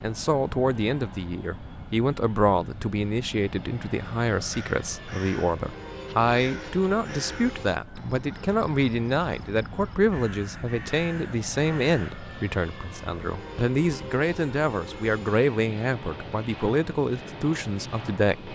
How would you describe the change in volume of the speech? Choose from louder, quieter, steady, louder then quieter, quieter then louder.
steady.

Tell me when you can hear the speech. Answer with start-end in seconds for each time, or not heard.
0.0-18.4.